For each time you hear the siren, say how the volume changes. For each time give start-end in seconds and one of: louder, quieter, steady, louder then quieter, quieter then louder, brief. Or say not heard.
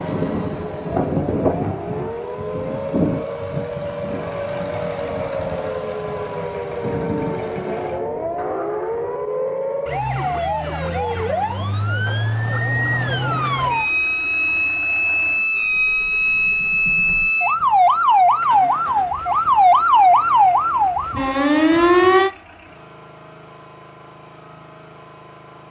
0.0-22.3 louder.